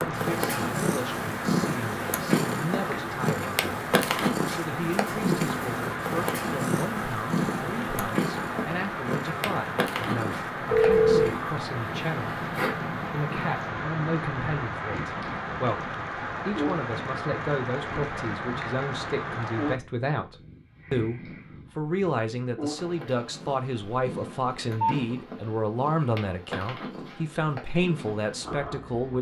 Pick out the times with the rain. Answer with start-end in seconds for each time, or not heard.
0.0-19.8.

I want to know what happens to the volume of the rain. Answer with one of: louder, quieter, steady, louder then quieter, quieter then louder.
steady.